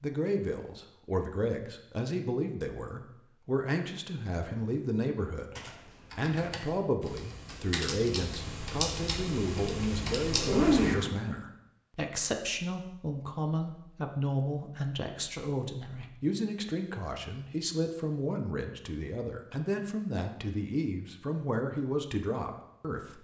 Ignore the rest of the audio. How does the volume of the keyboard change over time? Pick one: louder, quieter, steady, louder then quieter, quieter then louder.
louder.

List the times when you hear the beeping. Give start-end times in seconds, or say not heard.
not heard.